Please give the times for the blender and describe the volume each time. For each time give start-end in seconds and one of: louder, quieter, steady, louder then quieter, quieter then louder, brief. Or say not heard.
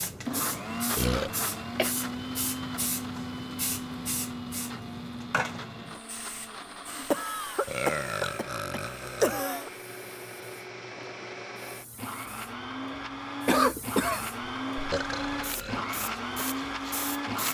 0.1-17.4 quieter then louder.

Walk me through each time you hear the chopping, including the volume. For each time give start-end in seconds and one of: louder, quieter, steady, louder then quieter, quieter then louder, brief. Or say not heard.
not heard.